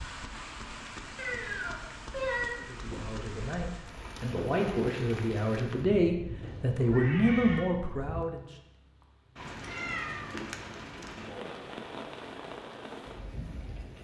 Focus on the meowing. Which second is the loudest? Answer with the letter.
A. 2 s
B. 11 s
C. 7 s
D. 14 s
A.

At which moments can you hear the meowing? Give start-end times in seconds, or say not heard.
1.1-2.5, 6.4-7.6, 9.6-10.5.